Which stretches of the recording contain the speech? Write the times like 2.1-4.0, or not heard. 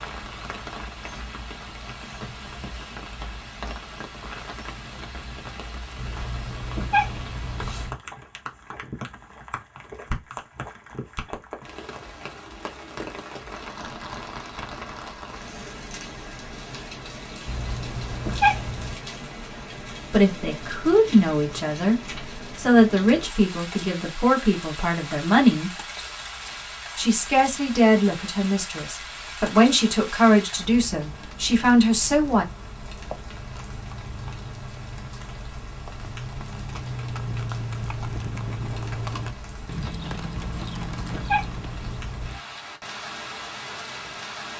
20.1-25.7, 26.9-32.5.